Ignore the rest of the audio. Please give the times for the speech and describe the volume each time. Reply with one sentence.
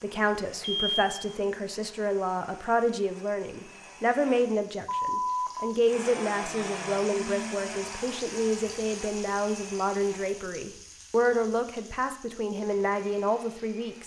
You can hear the speech from 0.0 to 14.0 s, at a steady volume.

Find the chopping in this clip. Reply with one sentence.
You can't hear the chopping here.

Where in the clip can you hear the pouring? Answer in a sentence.
The pouring can't be heard in this clip.